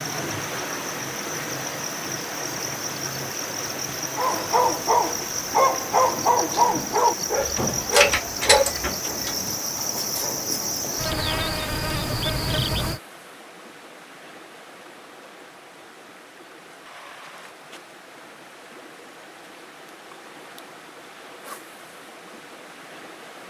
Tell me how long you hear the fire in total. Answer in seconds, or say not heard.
not heard.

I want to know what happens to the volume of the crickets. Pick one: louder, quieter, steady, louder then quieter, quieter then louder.
louder.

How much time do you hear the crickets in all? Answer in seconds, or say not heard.
13 s.